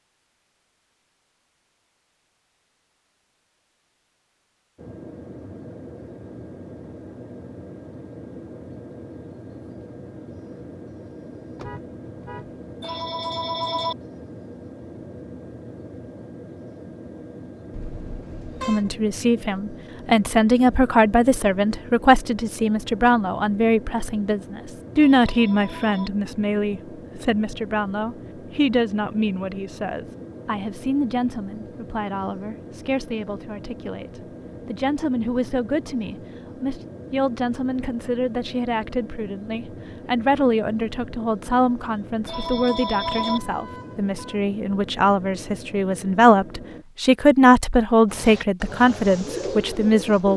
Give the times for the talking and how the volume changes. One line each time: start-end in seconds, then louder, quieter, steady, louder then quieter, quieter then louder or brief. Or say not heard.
18.6-50.3 quieter then louder.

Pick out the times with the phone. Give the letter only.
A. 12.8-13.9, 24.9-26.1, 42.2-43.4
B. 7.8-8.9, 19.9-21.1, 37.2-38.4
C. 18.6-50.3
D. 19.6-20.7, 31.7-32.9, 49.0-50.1
A.